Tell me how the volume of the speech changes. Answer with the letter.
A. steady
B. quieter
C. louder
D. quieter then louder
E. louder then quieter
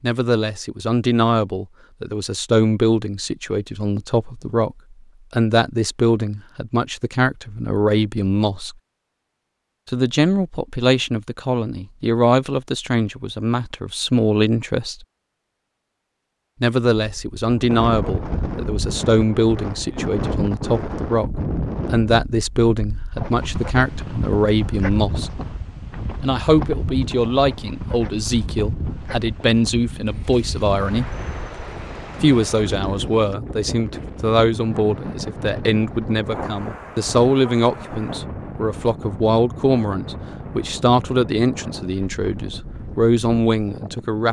A.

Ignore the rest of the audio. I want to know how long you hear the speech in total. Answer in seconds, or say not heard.
39 s.